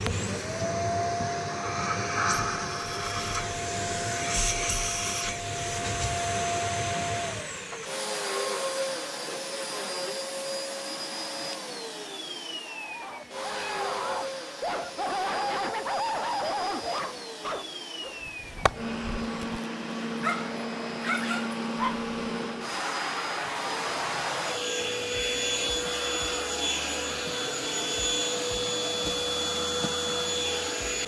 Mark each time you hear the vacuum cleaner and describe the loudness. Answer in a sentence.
You can hear the vacuum cleaner from 0.0 to 31.0 s, getting quieter then louder.